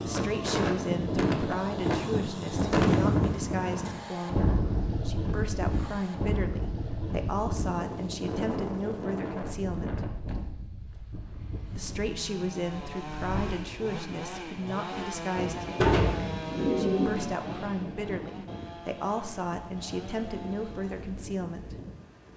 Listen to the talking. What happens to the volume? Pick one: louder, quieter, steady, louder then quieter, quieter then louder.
steady.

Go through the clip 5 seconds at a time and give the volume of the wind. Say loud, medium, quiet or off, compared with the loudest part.
loud, medium, quiet, quiet, quiet.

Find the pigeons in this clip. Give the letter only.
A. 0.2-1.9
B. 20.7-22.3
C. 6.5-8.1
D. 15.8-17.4
D.